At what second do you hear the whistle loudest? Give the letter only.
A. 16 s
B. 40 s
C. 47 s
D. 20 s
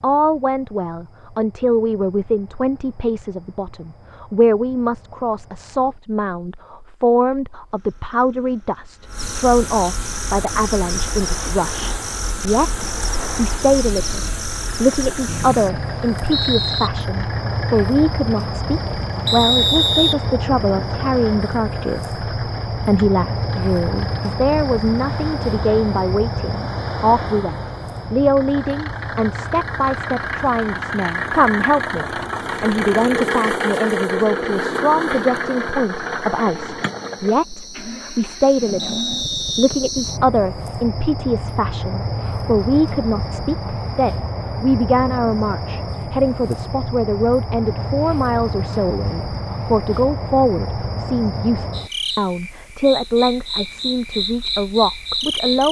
D.